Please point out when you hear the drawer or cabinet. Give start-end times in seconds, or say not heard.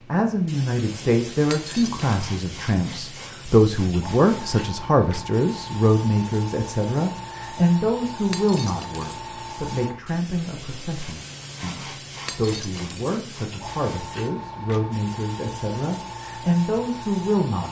not heard.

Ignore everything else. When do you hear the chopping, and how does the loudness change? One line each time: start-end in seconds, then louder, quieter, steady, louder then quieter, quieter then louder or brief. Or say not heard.
not heard.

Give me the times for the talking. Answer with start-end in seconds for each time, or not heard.
0.0-17.6.